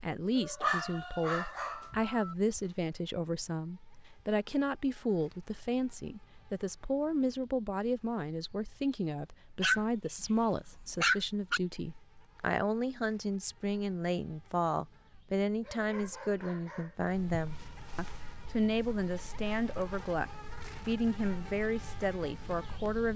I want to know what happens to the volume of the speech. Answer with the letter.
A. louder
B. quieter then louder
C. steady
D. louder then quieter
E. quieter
C.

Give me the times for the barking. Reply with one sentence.
The barking can be heard from 0.6 to 2.6 s, from 9.6 to 11.6 s and from 15.6 to 17.0 s.